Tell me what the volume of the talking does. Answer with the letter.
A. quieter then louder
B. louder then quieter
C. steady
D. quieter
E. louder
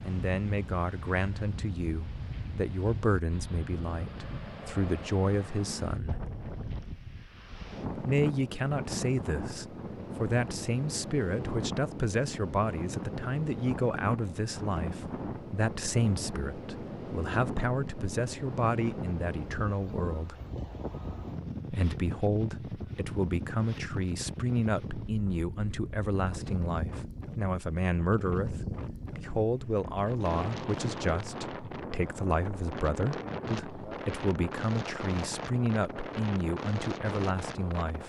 C.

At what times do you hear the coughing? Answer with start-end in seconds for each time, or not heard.
not heard.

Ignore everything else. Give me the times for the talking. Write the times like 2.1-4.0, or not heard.
0.0-6.2, 8.0-20.4, 21.7-38.0.